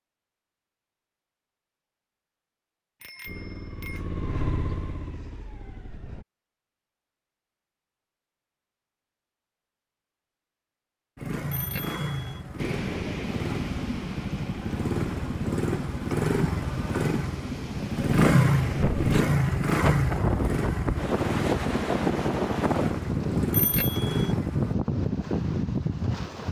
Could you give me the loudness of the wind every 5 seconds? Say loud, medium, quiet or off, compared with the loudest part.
off, off, medium, medium, loud, loud.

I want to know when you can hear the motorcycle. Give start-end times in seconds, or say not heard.
3.2-6.2, 11.2-24.8.